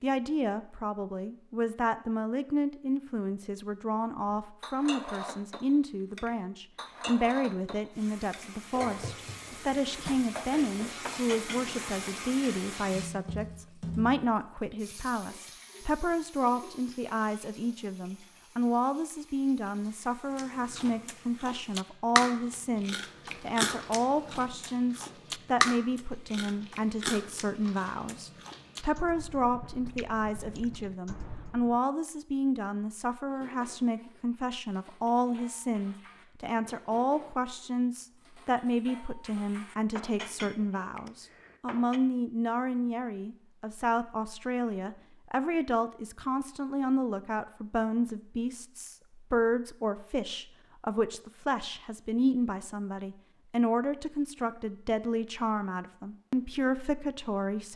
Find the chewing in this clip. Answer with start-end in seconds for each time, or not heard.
20.4-31.8.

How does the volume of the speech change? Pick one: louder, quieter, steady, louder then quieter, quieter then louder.
steady.